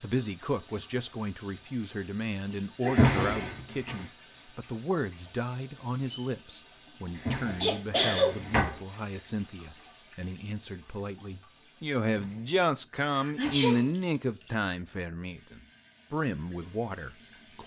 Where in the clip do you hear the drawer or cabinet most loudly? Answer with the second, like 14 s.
3 s.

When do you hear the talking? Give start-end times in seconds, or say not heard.
0.0-17.6.